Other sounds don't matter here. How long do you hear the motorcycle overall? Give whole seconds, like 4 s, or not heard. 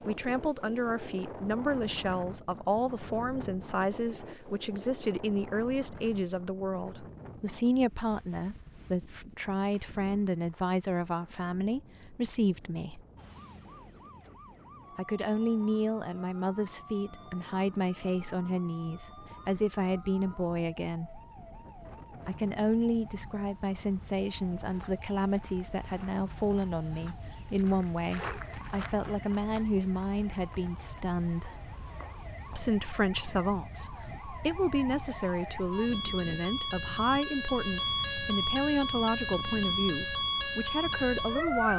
not heard.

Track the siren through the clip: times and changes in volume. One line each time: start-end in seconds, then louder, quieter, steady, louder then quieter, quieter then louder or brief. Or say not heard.
13.2-41.7 louder.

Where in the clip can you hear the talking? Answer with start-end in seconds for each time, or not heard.
0.0-13.1, 14.9-21.2, 22.2-31.6, 32.5-41.7.